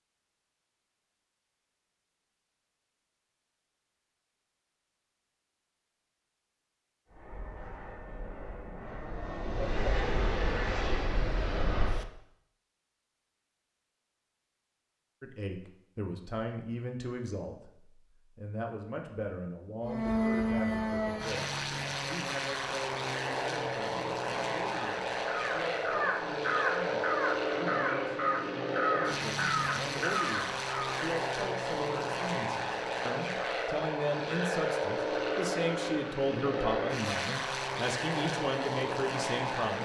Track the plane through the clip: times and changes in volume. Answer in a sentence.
You can hear the plane from 7.0 to 12.1 s, getting louder; and from 19.8 to 39.8 s, at a steady volume.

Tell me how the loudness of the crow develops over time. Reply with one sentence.
The volume of the crow stays about the same.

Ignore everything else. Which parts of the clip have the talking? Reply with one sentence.
You can hear the talking from 15.2 to 39.8 s.